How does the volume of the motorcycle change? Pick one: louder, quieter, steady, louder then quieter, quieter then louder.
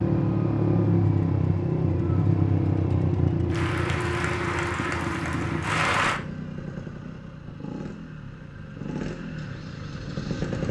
quieter.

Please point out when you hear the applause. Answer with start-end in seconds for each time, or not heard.
3.5-6.2.